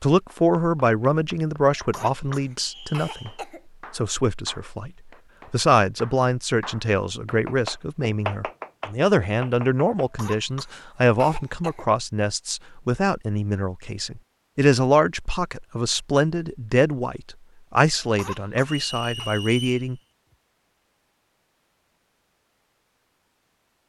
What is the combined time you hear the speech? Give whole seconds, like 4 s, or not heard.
19 s.